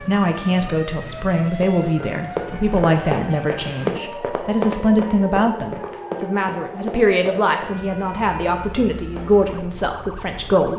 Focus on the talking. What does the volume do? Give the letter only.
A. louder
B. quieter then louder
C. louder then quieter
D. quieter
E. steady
E.